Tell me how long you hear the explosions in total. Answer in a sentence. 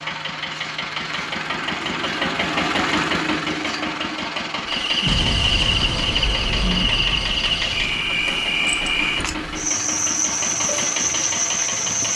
The explosions can be heard for 3 seconds in total.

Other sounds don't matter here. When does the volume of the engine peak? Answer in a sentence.
The loudest moment of the engine is at 3 seconds.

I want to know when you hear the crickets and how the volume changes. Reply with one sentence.
You can hear the crickets from 4.6 to 12.1 s, at a steady volume.